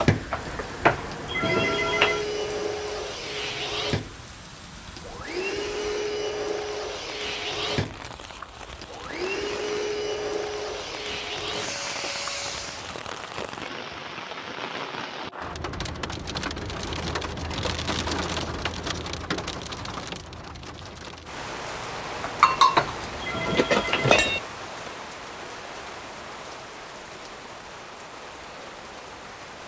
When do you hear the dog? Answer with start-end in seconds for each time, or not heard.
not heard.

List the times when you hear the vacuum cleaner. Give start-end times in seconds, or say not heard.
0.0-12.9.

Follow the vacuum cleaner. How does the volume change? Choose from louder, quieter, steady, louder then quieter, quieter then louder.
steady.